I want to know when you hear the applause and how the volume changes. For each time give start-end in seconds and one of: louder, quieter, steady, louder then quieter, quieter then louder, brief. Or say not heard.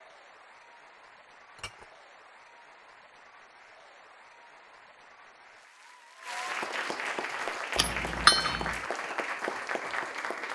0.0-10.5 louder.